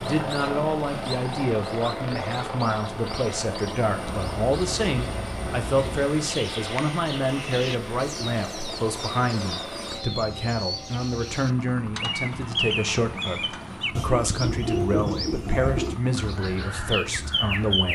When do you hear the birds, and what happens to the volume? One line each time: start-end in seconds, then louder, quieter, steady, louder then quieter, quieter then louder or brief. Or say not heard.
0.2-17.9 louder.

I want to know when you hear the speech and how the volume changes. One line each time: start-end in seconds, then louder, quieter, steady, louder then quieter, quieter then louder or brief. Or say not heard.
0.0-17.9 steady.